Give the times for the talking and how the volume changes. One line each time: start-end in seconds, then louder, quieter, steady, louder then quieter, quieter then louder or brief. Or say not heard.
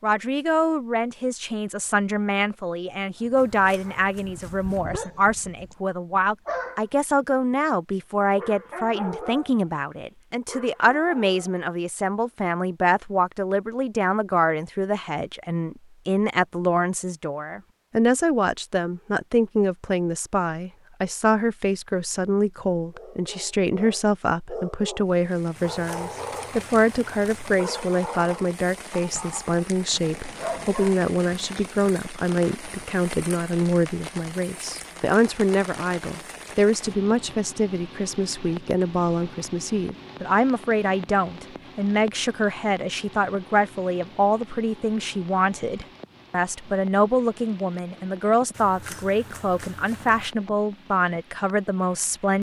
0.0-52.3 steady.